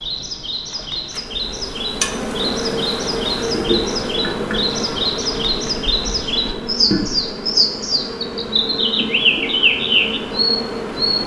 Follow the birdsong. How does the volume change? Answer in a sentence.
The volume of the birdsong goes up.